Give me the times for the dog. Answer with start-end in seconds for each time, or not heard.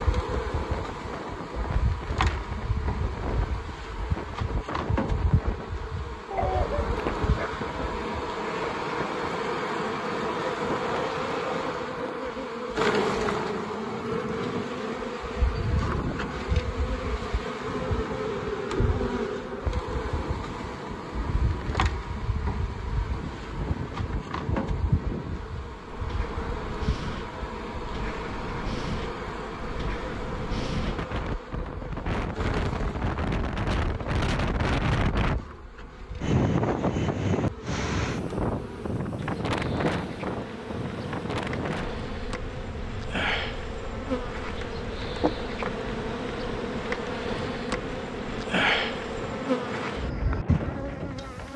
6.3-7.6.